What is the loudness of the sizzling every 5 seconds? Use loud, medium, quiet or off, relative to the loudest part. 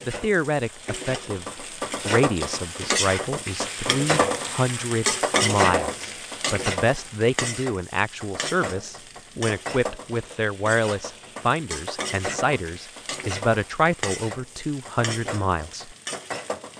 loud, loud, medium, medium.